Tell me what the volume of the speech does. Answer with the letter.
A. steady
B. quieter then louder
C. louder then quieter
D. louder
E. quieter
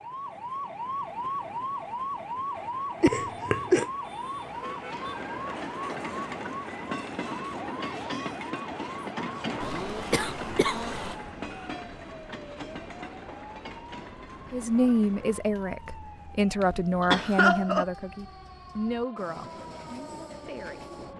E.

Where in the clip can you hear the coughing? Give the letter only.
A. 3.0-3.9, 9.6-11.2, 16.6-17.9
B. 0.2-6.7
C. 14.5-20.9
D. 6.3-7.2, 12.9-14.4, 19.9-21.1
A.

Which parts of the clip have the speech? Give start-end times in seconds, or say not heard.
14.5-20.9.